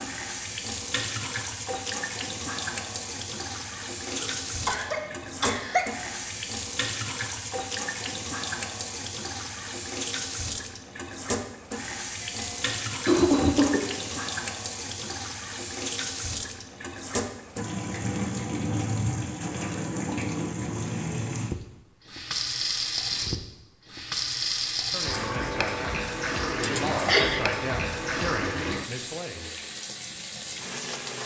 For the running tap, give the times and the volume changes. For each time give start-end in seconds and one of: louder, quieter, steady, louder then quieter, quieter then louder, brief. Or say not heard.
0.0-31.2 steady.